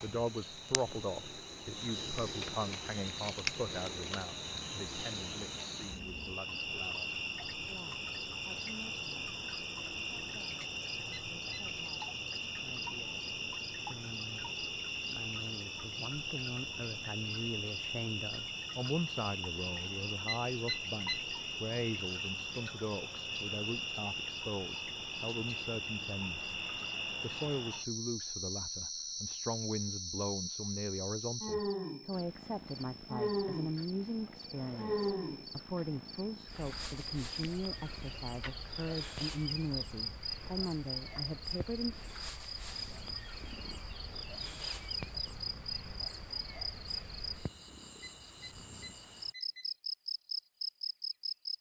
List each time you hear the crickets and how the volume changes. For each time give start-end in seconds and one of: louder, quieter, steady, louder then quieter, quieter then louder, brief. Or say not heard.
0.0-51.5 steady.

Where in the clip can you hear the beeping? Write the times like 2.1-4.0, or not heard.
11.1-11.7, 20.2-21.2, 48.0-49.7.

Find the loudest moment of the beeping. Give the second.
21 s.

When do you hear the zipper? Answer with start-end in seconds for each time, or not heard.
not heard.